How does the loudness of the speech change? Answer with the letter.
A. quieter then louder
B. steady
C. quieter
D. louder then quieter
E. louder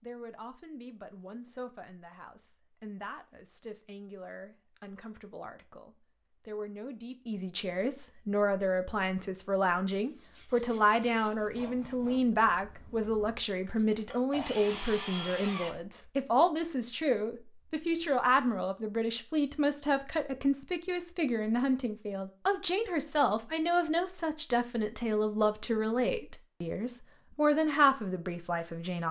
E.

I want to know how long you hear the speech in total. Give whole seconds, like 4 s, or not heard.
29 s.